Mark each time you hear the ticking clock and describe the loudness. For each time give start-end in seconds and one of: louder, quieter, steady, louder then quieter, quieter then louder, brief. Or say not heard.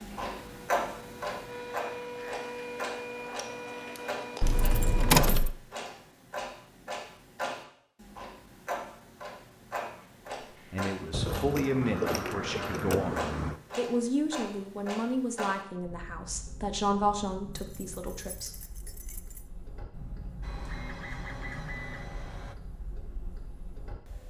0.0-24.2 quieter.